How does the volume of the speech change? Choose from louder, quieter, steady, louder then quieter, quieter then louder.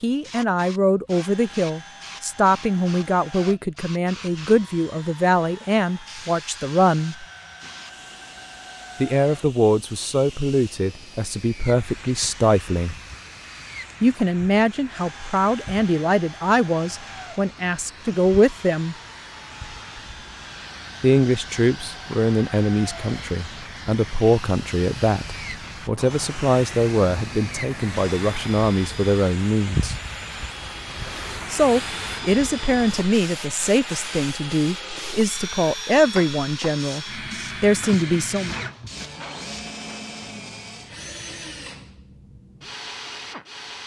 steady.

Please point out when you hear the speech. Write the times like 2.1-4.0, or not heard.
0.0-7.2, 9.0-12.9, 14.0-18.9, 21.0-29.9, 31.5-38.5.